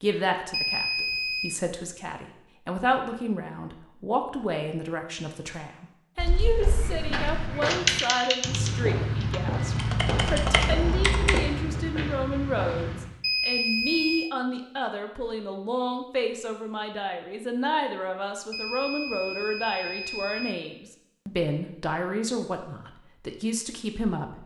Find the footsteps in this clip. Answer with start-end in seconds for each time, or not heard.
6.5-13.2.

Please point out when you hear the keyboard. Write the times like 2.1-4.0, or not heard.
6.2-11.4.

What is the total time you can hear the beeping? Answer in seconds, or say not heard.
4 s.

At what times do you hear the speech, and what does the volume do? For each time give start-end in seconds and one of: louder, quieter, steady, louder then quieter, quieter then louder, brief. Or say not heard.
0.0-24.4 steady.